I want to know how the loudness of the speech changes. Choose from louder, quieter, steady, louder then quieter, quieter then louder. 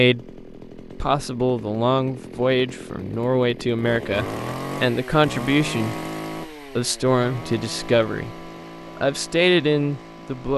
steady.